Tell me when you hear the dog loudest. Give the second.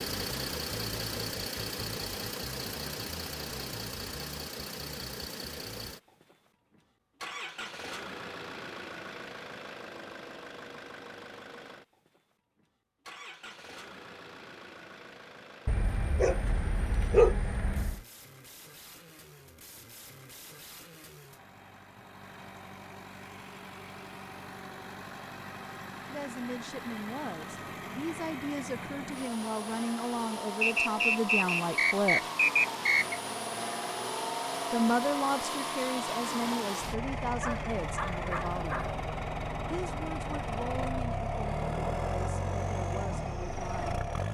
17 s.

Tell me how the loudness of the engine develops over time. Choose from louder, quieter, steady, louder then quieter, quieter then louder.
quieter then louder.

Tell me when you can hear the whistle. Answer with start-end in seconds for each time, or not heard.
30.6-33.2.